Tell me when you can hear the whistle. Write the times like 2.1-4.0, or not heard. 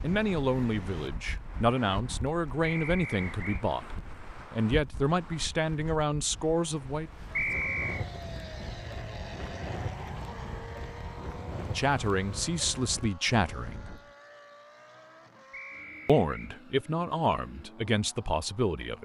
2.6-3.6, 7.3-8.1, 15.5-16.6.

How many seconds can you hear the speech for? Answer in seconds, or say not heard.
12 s.